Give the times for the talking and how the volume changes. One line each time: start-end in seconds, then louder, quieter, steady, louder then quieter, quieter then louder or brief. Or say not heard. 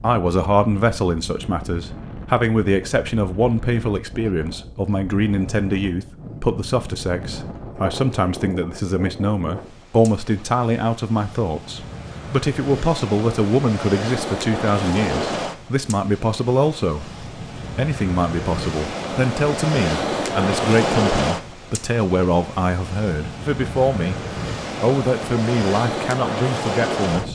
0.0-27.2 steady.